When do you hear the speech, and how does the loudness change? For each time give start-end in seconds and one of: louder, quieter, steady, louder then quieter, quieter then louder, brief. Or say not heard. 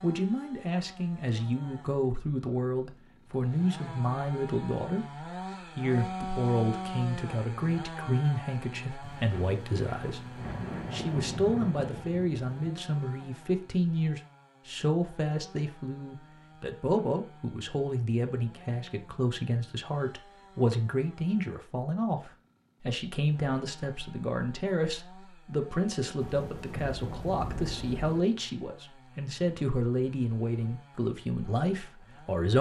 0.0-32.5 steady.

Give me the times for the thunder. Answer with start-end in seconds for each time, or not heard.
9.0-12.5, 26.2-28.2.